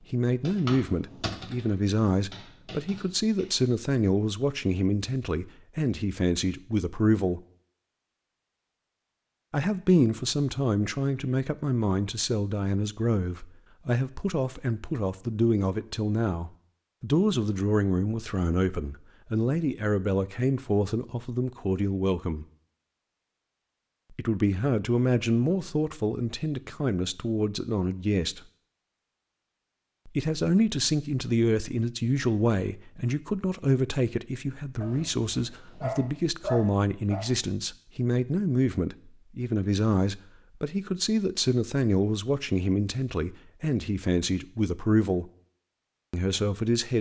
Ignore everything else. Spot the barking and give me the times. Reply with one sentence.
You can hear the barking from 34.8 to 37.2 s.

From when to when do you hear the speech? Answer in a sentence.
You can hear the speech from 0.1 to 7.4 s, from 9.5 to 22.4 s, from 24.1 to 28.4 s, from 30.1 to 45.3 s and from 46.1 to 46.9 s.